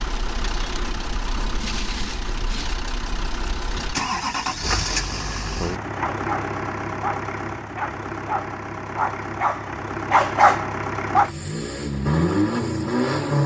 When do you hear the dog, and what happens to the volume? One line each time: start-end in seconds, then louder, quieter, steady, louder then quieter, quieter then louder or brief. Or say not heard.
6.0-11.3 louder.